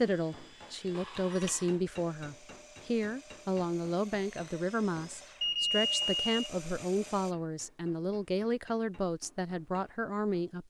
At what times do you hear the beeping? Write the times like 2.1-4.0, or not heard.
0.9-1.7, 5.4-6.5.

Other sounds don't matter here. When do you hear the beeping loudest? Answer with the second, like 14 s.
6 s.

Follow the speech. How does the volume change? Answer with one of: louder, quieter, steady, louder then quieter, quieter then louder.
steady.